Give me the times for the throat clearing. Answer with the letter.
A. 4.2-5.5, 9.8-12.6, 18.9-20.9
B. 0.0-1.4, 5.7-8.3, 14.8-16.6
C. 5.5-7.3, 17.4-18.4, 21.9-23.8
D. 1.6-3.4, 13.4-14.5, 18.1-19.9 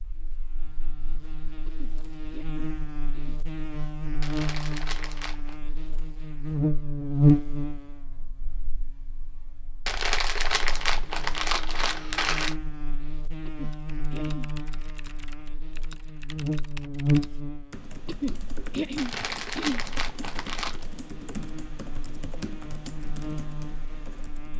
D.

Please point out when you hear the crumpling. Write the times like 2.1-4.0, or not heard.
4.2-5.5, 9.8-12.6, 18.9-20.9.